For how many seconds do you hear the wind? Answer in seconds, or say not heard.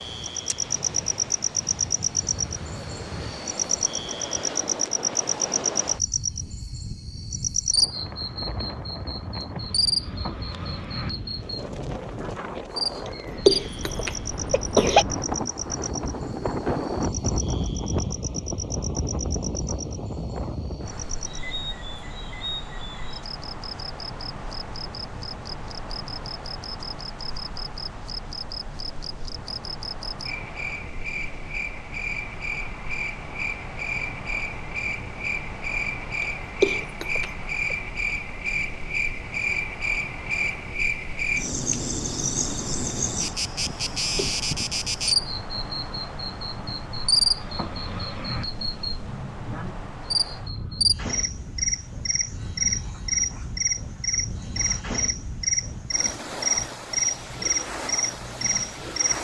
59 s.